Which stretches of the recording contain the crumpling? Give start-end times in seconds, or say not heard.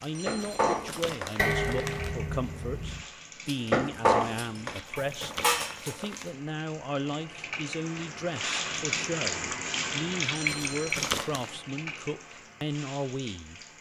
0.4-2.1, 4.7-6.3, 10.4-11.5.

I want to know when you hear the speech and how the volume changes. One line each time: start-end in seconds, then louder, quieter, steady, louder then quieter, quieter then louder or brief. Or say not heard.
0.0-13.6 steady.